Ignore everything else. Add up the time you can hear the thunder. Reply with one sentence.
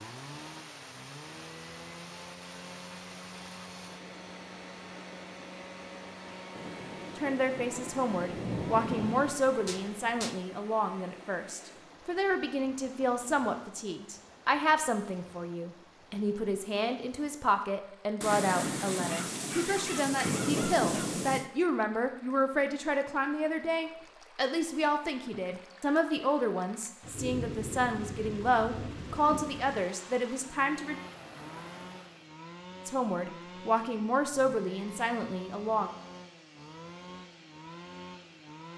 The thunder can be heard for 10 seconds in total.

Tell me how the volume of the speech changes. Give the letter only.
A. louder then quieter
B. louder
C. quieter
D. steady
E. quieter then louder
D.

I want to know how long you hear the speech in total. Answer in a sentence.
You can hear the speech for 27 seconds altogether.